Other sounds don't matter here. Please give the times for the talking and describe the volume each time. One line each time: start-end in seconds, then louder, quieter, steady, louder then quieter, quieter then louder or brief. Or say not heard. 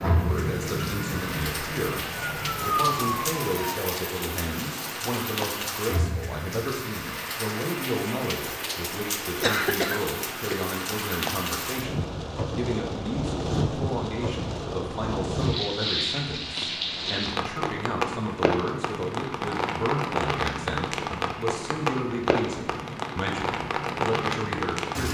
0.0-25.0 steady.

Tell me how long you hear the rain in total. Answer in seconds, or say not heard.
25 s.